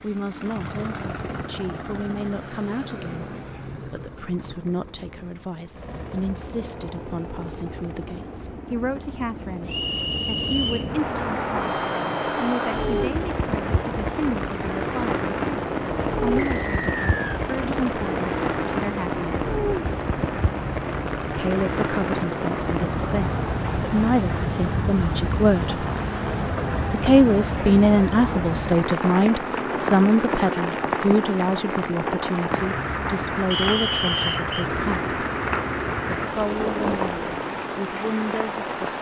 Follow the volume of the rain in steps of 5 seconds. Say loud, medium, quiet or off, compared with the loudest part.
off, off, loud, loud, loud, loud, loud, loud.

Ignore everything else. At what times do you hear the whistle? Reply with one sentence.
You can hear the whistle from 9.7 to 10.9 s, from 16.4 to 17.4 s and from 33.5 to 34.6 s.